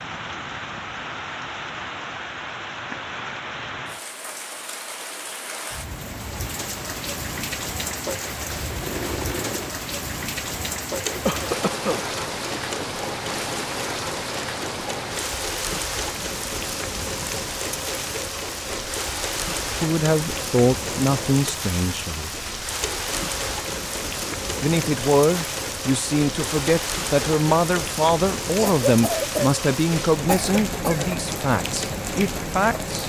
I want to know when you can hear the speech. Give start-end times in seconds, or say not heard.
19.7-22.3, 24.6-33.0.